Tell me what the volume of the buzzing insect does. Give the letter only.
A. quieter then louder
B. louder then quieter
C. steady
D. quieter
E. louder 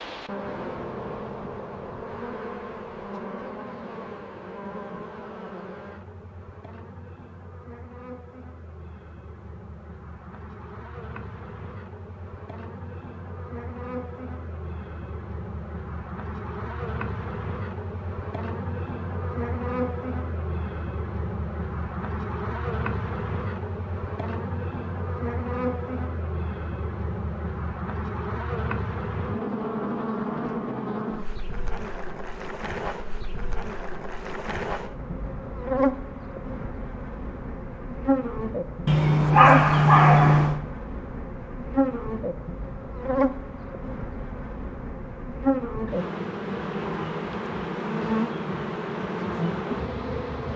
E.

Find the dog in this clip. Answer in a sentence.
You can hear the dog from 38.9 to 40.6 s.